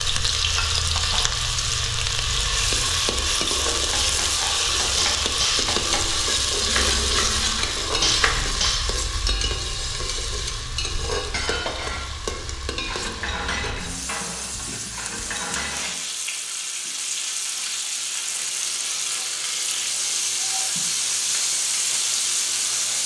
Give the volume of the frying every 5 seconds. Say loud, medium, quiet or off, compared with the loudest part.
loud, loud, medium, medium, loud.